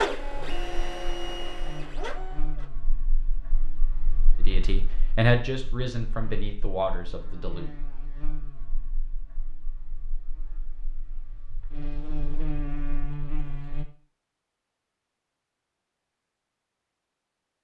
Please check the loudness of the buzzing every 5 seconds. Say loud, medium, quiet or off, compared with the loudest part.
medium, medium, loud, off.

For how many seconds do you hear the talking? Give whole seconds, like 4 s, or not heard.
3 s.